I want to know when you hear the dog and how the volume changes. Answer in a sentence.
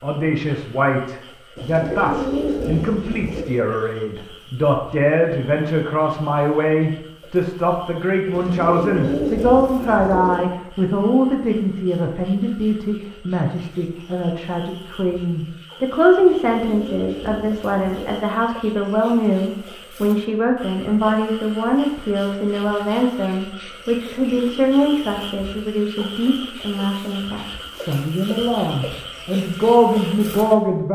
You can't hear the dog here.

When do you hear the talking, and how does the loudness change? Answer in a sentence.
The talking can be heard from 0.0 to 30.8 s, at a steady volume.